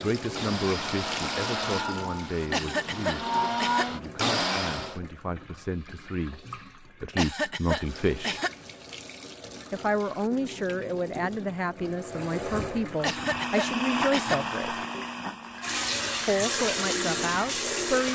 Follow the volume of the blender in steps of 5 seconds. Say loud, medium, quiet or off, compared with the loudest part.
loud, off, loud, medium.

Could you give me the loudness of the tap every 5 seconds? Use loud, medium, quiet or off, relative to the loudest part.
medium, quiet, medium, loud.